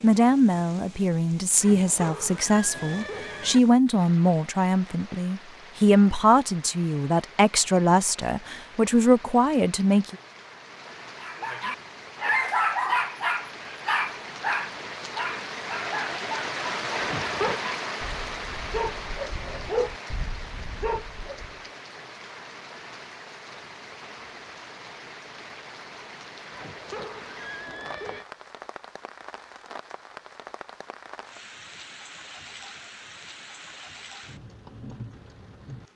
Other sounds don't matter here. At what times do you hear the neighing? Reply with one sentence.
The neighing can be heard from 1.6 to 3.6 s, from 17.0 to 17.6 s and from 26.5 to 28.2 s.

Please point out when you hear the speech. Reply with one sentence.
The speech can be heard from 0.0 to 10.2 s.